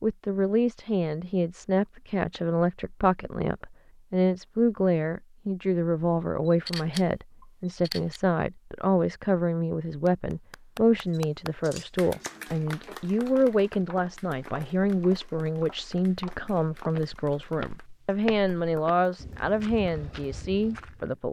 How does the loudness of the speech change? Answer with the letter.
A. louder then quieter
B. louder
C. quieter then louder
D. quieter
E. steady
E.